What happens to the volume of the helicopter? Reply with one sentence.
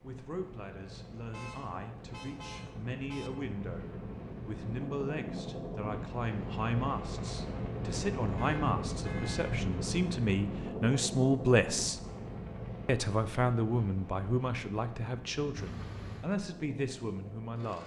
The volume of the helicopter goes up, then down.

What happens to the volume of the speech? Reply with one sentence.
The volume of the speech goes up, then down.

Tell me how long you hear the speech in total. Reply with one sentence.
You can hear the speech for 17 seconds altogether.